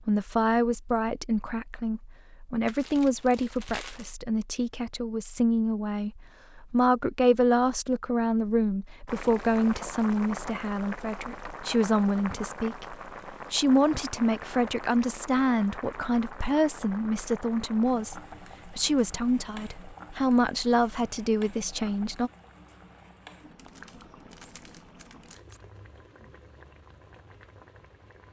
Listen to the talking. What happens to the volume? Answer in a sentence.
The volume of the talking stays about the same.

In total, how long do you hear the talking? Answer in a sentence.
The talking can be heard for 22 seconds in total.